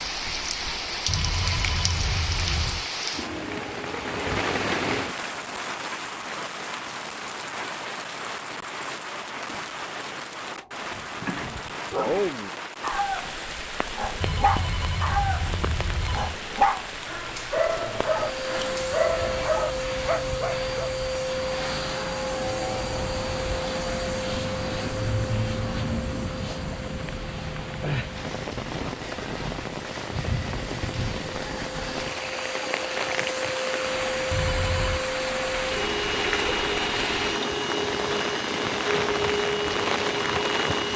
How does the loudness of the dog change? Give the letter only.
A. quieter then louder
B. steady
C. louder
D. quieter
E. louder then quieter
B.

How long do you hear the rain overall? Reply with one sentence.
You can hear the rain for 41 seconds altogether.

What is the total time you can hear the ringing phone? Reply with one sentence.
The ringing phone can be heard for 5 seconds in total.